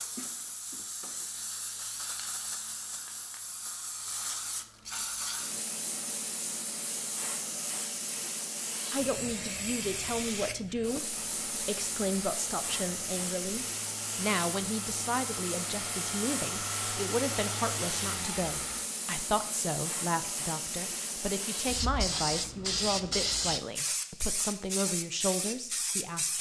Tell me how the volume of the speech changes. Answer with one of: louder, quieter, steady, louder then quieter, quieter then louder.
steady.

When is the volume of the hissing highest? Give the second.
23 s.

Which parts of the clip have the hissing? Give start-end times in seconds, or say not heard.
0.0-26.3.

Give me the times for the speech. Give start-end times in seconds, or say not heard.
8.9-26.3.